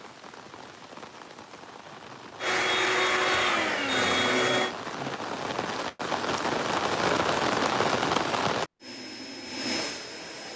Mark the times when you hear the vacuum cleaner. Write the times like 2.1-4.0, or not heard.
2.4-4.8, 8.8-10.5.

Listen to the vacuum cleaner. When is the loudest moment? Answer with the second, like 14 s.
3 s.